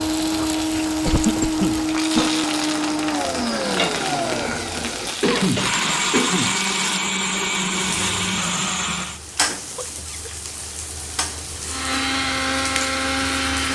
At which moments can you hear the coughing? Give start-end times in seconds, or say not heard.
1.0-2.3, 5.2-6.6, 9.4-10.2.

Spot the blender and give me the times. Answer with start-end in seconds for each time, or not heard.
0.0-9.2, 11.7-13.7.